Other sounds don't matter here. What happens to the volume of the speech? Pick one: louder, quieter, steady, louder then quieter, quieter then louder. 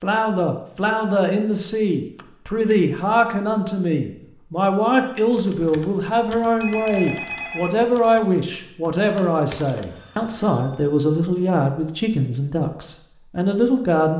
steady.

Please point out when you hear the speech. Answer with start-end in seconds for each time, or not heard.
0.0-14.1.